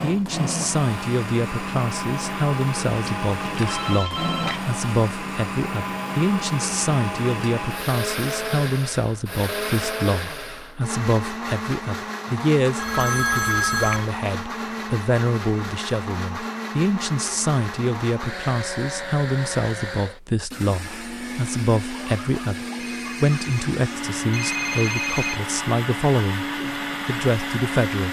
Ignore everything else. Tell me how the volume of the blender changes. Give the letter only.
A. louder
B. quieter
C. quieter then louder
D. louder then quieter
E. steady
E.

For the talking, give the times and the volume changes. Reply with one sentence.
You can hear the talking from 0.0 to 26.4 s, at a steady volume; and briefly from 27.1 to 28.0 s.